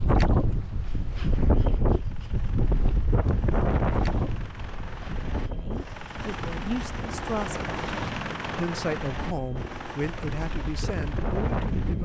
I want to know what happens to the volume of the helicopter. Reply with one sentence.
The volume of the helicopter goes up, then down.